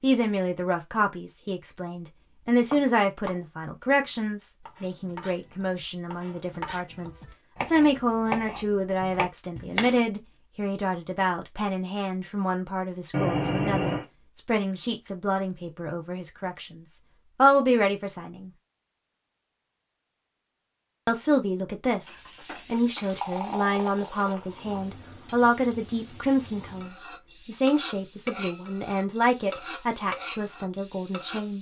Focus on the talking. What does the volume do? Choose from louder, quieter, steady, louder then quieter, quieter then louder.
steady.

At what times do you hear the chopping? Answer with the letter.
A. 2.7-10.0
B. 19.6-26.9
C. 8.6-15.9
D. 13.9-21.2
A.